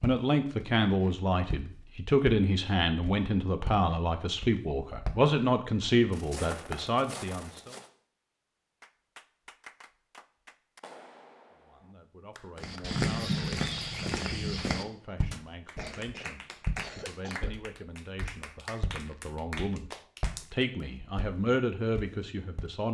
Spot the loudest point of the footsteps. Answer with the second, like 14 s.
13 s.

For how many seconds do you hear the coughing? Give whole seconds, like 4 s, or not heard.
2 s.